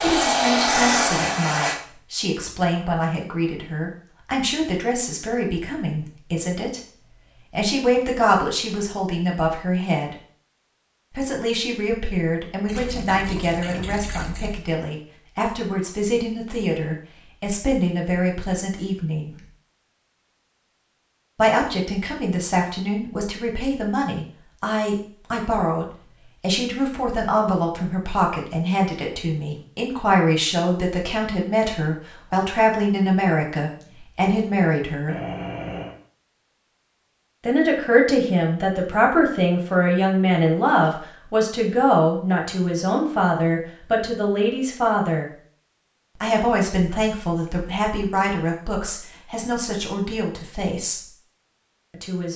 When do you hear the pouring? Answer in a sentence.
The pouring can be heard from 12.7 to 14.6 s and from 35.0 to 36.0 s.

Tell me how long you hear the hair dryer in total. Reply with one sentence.
You can hear the hair dryer for 2 seconds altogether.